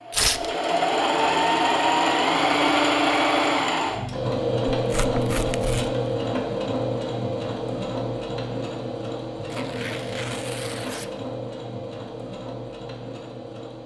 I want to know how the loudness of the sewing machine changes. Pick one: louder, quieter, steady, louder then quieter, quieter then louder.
quieter.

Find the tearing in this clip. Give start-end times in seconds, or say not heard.
0.1-0.5, 4.8-6.0, 9.5-11.1.